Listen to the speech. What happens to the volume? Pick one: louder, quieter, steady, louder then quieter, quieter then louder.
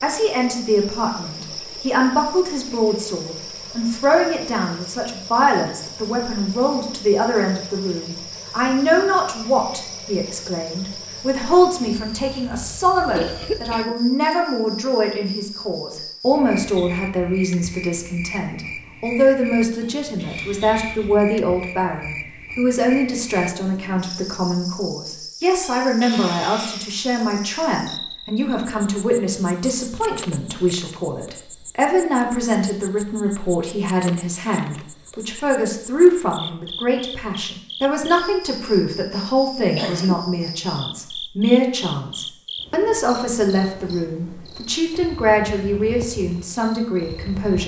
steady.